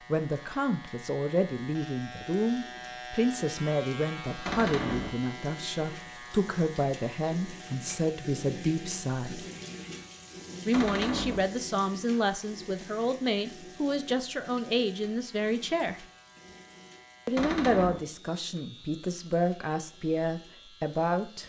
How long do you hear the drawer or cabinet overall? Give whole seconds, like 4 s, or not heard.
2 s.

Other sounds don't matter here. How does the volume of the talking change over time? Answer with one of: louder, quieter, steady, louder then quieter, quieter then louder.
steady.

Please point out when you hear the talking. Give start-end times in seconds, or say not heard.
0.1-9.4, 10.7-16.1, 17.2-21.4.